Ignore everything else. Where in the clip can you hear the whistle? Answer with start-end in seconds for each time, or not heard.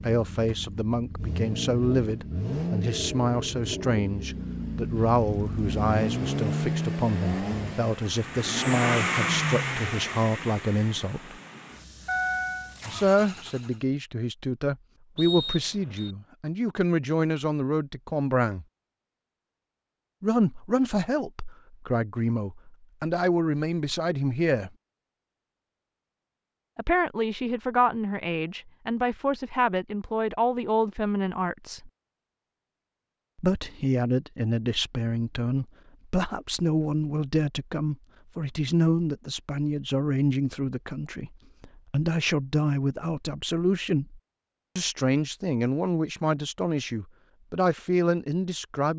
15.2-16.1.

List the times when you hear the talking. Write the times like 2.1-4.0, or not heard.
0.0-11.3, 12.9-18.6, 20.2-24.7, 26.8-31.9, 33.4-48.9.